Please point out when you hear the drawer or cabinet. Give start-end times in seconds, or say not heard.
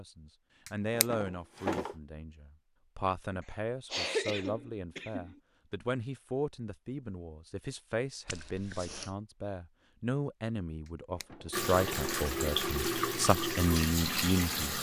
0.7-1.9, 10.8-12.1.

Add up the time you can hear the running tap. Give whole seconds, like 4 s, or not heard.
3 s.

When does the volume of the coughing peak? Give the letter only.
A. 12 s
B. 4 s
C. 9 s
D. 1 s
B.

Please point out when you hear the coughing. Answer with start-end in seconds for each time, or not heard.
3.4-5.4, 8.2-9.2.